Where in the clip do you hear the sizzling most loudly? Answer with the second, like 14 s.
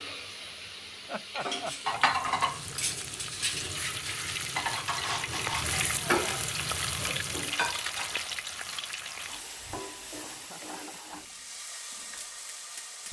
6 s.